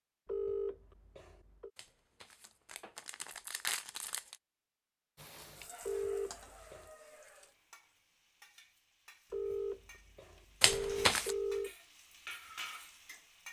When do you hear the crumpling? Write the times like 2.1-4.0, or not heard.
1.8-4.3, 10.6-11.3.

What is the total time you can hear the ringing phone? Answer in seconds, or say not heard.
5 s.